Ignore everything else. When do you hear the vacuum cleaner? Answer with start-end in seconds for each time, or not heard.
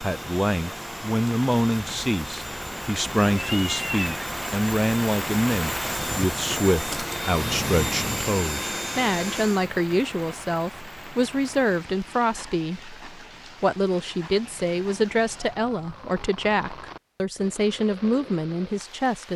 0.0-9.7.